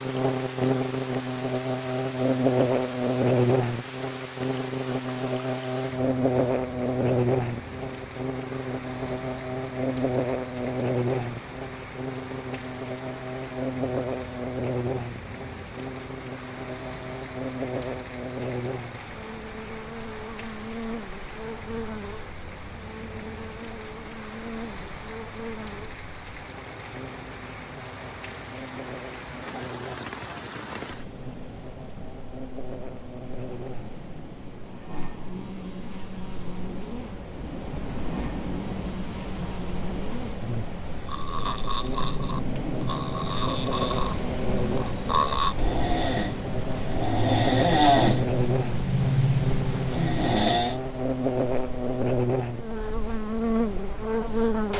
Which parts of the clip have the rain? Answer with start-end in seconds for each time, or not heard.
0.0-54.7.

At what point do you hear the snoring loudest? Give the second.
48 s.